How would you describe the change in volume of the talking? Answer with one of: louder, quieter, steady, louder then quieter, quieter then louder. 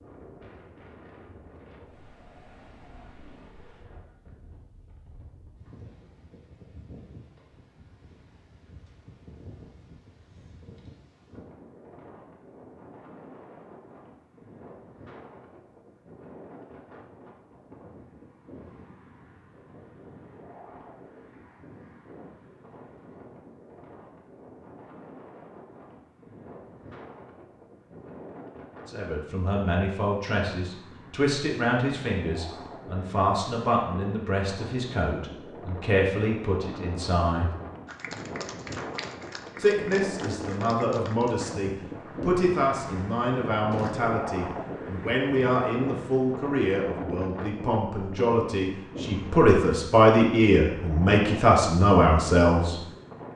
louder.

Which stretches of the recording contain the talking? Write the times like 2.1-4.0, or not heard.
28.9-37.5, 39.6-52.8.